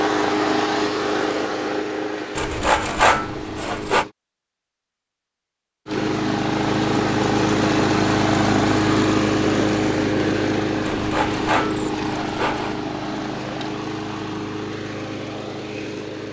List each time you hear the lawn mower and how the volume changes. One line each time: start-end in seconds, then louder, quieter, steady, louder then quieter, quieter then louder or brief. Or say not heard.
0.0-4.2 quieter
5.8-16.2 quieter.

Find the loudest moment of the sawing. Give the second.
3 s.